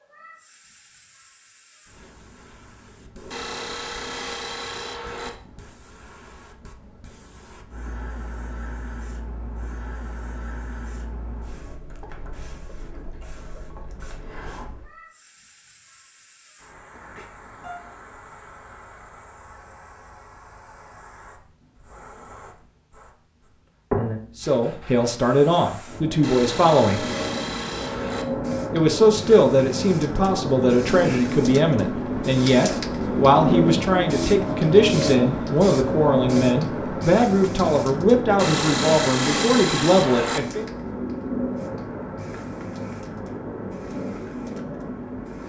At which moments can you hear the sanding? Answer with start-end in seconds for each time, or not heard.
3.3-5.3, 26.2-28.2, 38.4-40.4.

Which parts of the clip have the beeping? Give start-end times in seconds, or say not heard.
17.1-17.8.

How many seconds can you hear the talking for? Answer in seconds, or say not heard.
15 s.